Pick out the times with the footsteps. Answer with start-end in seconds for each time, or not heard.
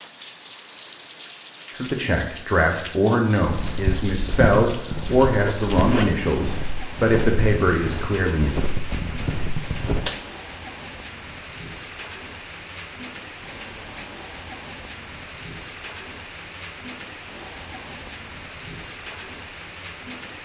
3.4-10.2.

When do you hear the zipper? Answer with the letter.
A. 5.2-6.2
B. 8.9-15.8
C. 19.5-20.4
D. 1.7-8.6
A.